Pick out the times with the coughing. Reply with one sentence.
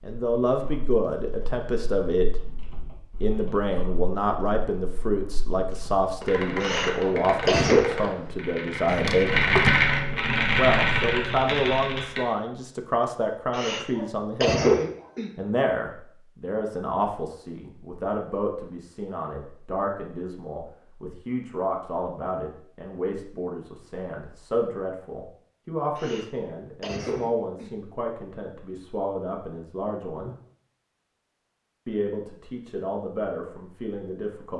The coughing can be heard from 6.6 to 7.8 s, from 13.5 to 15.3 s and from 25.9 to 27.7 s.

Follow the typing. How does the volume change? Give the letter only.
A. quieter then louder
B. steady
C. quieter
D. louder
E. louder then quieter
D.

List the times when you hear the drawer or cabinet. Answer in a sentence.
You can hear the drawer or cabinet from 8.8 to 9.8 s.